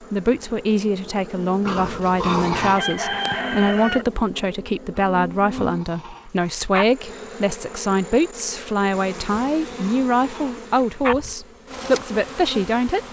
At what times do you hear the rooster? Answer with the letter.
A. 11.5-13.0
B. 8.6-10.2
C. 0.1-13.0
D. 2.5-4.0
D.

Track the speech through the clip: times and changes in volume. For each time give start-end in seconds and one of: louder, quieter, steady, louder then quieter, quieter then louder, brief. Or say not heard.
0.1-13.0 steady.